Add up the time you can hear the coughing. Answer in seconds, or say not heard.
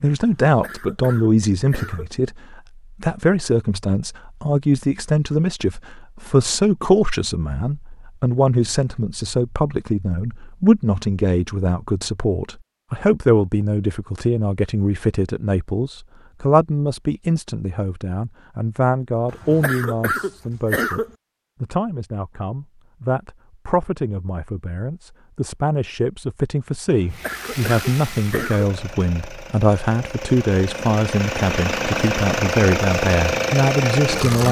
5 s.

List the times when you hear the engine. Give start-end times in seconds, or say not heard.
27.1-34.4.